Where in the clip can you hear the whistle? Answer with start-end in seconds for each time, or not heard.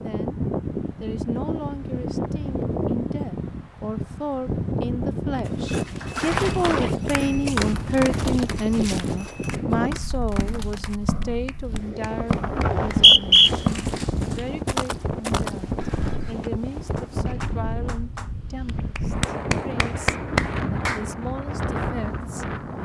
12.7-13.5.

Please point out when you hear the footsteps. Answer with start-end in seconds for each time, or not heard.
5.5-16.4.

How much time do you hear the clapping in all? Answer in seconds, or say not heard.
13 s.